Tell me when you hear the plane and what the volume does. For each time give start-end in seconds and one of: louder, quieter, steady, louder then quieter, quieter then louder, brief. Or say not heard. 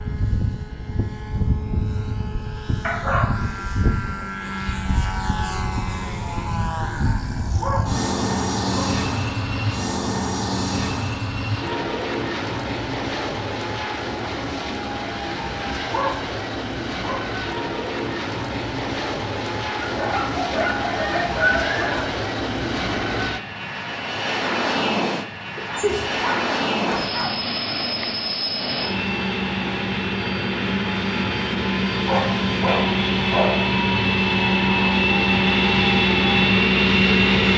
0.0-37.5 louder.